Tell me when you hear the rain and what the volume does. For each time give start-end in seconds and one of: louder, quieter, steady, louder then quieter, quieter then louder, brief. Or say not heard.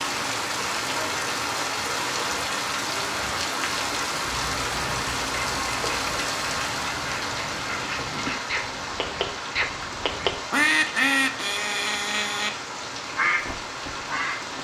0.0-14.5 quieter.